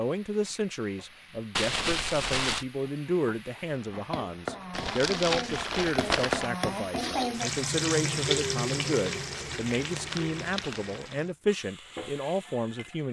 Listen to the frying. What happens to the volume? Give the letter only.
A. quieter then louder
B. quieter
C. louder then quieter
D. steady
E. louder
C.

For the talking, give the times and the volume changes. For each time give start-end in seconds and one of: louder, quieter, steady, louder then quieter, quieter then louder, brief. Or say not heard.
0.0-13.0 steady.